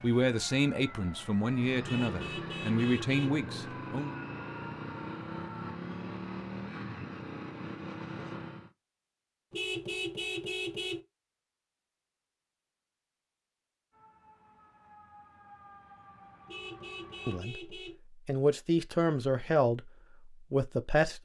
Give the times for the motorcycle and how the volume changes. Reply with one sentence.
You can hear the motorcycle from 1.4 to 8.7 s, at a steady volume.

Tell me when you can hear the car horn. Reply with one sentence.
The car horn can be heard from 1.9 to 3.4 s, from 9.5 to 11.0 s and from 16.4 to 17.9 s.